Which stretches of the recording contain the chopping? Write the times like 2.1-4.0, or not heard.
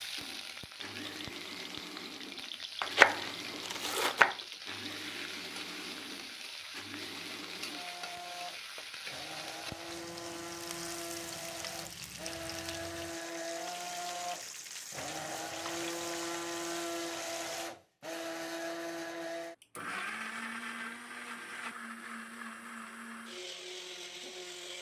2.8-4.3.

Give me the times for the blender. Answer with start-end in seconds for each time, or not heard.
0.0-24.7.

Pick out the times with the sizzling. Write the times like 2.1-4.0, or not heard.
0.0-17.6.